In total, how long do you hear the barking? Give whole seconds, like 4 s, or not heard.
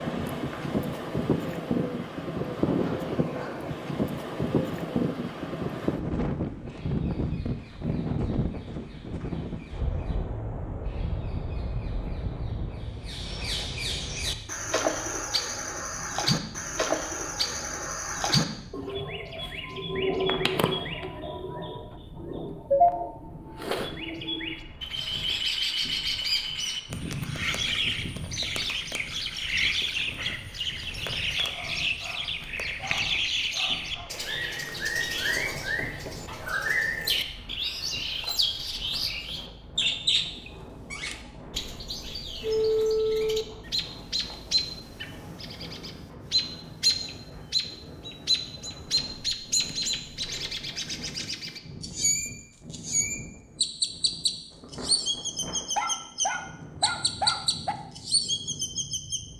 6 s.